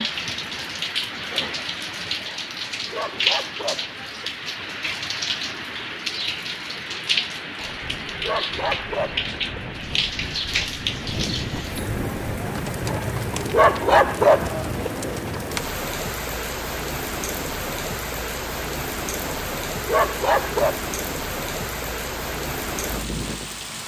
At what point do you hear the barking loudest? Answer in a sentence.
The volume of the barking peaks at 14 seconds.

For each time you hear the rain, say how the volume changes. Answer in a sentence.
The rain can be heard from 0.0 to 23.8 s, at a steady volume.